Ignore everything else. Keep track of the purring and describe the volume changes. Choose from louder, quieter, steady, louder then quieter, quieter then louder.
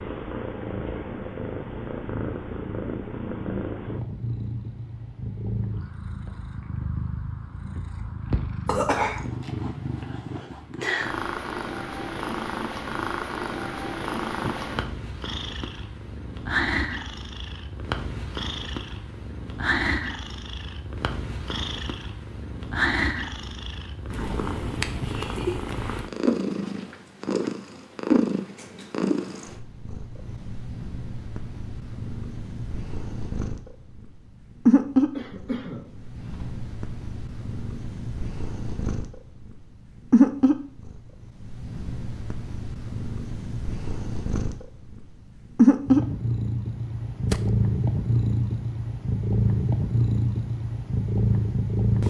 louder.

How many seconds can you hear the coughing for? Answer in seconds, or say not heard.
2 s.